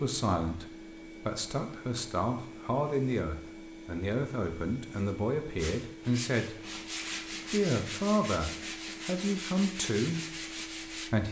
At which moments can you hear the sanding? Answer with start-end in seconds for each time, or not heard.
5.5-11.1.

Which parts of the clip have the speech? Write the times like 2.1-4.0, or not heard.
0.0-11.2.